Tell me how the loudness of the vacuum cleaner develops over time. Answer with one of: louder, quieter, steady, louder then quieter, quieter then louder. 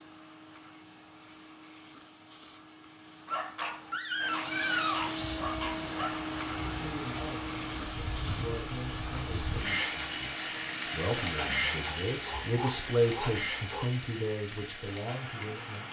louder then quieter.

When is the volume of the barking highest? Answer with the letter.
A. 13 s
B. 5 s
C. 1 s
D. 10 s
B.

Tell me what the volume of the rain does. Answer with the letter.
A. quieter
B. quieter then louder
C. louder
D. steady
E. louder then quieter
E.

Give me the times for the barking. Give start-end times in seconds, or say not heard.
3.2-6.2, 11.8-13.9.